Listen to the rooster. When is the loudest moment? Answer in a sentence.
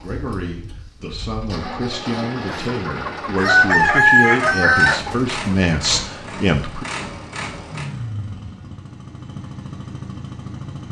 The volume of the rooster peaks at 4 seconds.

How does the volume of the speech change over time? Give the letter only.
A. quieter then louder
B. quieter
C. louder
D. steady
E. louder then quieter
C.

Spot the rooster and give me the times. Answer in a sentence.
The rooster can be heard from 2.5 to 6.0 s.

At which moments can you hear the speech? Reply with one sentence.
The speech can be heard from 0.0 to 6.8 s.